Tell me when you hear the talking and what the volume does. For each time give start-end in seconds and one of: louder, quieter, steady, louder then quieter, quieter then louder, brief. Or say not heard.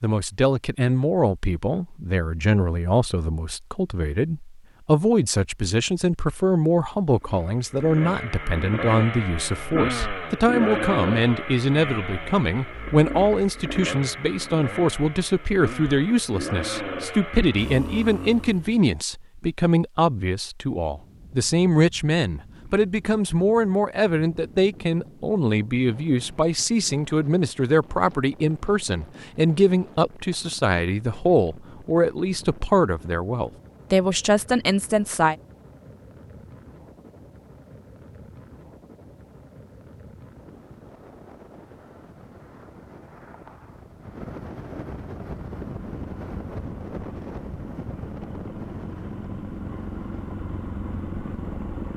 0.0-35.4 steady.